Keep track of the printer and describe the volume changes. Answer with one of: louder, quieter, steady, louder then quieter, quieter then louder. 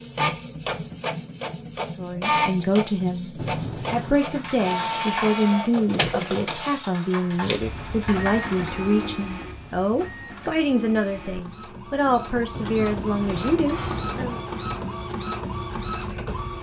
quieter then louder.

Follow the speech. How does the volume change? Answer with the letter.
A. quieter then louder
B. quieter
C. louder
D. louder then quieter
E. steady
E.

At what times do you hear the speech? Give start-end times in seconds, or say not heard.
1.9-14.4.